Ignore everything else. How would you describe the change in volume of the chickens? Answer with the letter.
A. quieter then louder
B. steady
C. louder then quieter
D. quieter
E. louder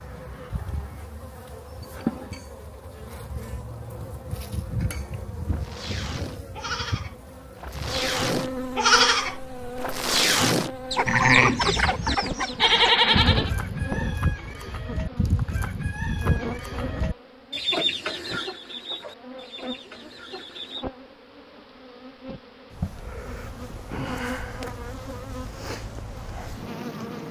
D.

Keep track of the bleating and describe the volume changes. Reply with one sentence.
The volume of the bleating goes up.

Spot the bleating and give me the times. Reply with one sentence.
You can hear the bleating from 5.5 to 13.5 s.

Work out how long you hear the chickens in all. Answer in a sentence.
The chickens can be heard for 10 seconds in total.